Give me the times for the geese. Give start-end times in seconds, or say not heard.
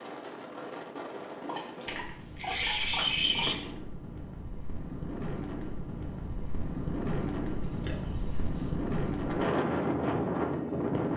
not heard.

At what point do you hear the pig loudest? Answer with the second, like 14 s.
3 s.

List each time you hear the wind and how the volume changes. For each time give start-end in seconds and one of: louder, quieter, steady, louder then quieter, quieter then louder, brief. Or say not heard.
0.0-11.1 louder.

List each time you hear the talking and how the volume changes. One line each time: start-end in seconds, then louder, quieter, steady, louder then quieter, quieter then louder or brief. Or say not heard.
not heard.